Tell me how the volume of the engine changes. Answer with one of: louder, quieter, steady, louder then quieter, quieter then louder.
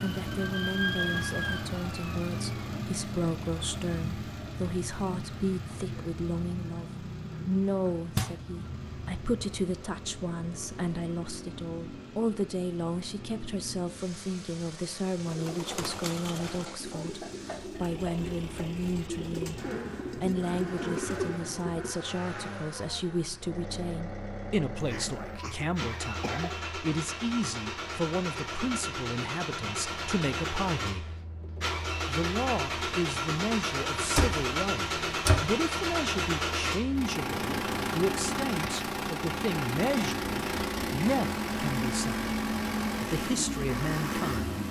quieter then louder.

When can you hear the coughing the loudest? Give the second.
26 s.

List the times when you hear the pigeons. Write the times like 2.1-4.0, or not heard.
15.2-21.9.